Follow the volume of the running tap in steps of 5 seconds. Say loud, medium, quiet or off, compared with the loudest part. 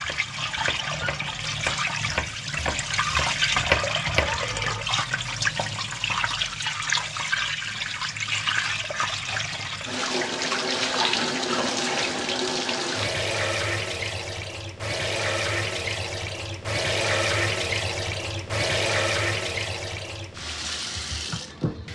loud, loud, loud, loud, medium.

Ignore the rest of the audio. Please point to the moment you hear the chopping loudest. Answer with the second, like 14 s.
4 s.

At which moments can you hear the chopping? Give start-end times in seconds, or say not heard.
0.0-4.4.